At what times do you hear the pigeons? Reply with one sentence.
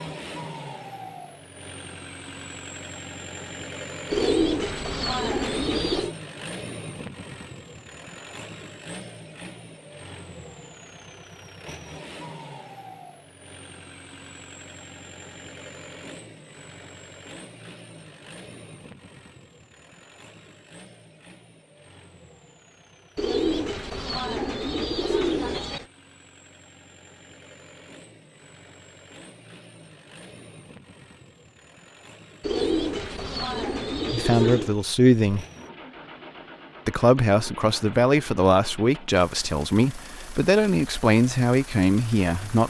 The pigeons can be heard from 4.1 to 6.2 s, from 23.1 to 25.9 s and from 32.4 to 34.8 s.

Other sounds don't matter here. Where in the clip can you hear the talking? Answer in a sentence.
You can hear the talking from 34.1 to 35.5 s and from 36.9 to 42.6 s.